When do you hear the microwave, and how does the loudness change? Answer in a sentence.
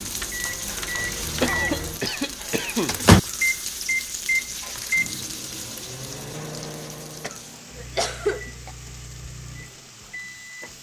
You can hear the microwave from 0.0 to 10.7 s, getting louder then quieter.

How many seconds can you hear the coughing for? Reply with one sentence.
The coughing can be heard for 3 seconds in total.